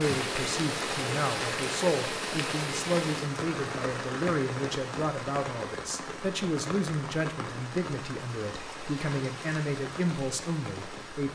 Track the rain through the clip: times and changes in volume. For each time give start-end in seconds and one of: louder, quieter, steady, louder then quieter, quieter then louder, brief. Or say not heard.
0.0-11.2 quieter.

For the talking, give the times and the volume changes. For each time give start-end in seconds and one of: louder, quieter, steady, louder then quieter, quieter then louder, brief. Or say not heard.
0.0-11.2 steady.